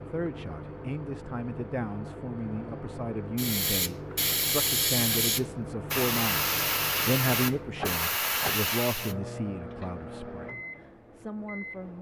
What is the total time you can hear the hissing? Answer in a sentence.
The hissing can be heard for 6 seconds in total.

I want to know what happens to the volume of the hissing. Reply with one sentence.
The loudness of the hissing stays about the same.